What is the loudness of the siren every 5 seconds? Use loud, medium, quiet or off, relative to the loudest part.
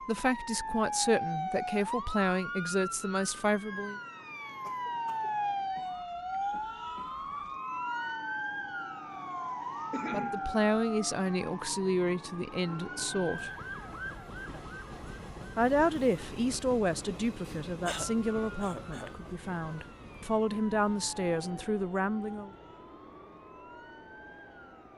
loud, loud, medium, quiet, quiet.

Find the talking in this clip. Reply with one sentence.
The talking can be heard from 0.1 to 4.0 s, from 10.1 to 13.5 s and from 15.6 to 22.5 s.